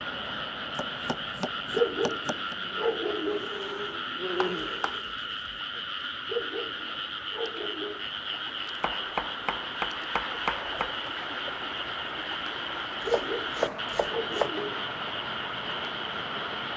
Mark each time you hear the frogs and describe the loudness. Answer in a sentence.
You can hear the frogs from 0.0 to 16.7 s, at a steady volume.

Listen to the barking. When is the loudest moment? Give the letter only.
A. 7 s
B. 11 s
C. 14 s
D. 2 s
D.